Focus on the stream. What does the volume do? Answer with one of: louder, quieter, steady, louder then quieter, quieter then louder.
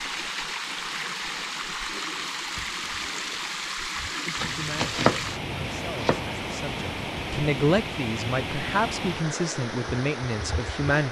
steady.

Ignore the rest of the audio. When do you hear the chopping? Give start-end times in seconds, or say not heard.
4.4-6.3.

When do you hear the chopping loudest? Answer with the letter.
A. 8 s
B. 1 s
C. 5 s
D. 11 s
C.